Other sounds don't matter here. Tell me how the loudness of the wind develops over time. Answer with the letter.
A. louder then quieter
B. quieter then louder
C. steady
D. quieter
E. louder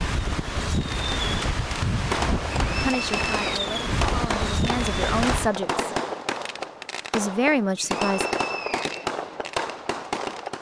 C.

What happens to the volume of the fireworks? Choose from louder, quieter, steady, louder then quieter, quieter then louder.
steady.